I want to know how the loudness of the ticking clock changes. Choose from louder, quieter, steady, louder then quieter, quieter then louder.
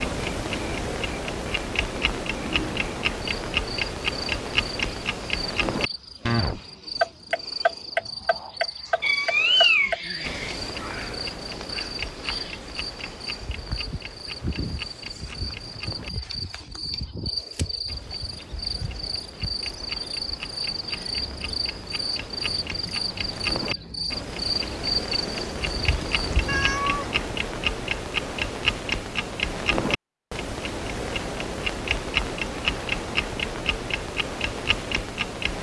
quieter then louder.